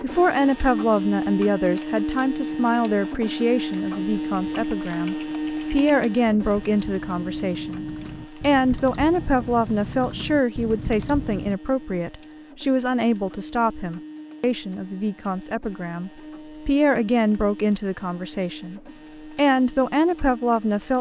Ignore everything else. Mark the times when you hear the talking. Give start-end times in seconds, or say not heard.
0.0-20.9.